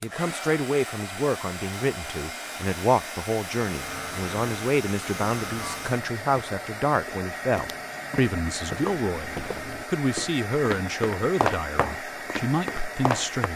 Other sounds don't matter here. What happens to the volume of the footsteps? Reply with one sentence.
The volume of the footsteps goes up.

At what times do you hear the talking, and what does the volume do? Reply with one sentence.
The talking can be heard from 0.0 to 13.5 s, at a steady volume.